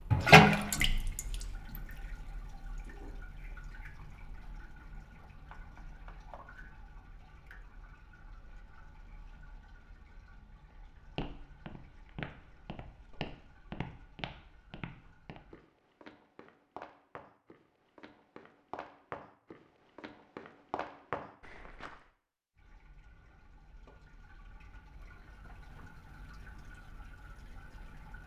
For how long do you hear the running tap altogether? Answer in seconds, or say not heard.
21 s.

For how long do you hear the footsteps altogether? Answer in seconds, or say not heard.
11 s.